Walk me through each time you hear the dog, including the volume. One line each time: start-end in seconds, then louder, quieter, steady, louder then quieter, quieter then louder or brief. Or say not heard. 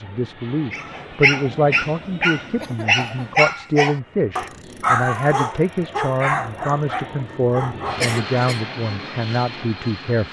0.7-8.2 quieter.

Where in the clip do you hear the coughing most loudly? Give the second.
8 s.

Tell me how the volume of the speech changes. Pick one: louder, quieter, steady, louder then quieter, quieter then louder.
steady.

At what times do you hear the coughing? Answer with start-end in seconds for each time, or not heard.
2.5-3.4, 8.0-8.6.